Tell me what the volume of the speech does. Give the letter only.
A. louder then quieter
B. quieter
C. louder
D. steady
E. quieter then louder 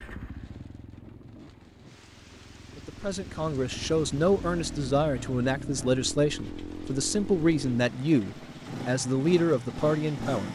D.